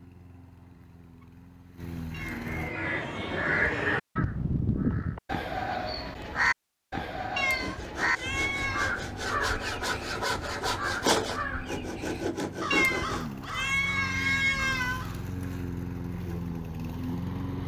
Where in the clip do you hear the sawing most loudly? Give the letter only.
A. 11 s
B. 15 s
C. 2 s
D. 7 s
A.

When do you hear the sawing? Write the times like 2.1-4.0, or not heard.
7.5-13.2.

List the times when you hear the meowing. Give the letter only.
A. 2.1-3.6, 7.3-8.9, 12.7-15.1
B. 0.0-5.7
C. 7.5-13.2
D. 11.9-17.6
A.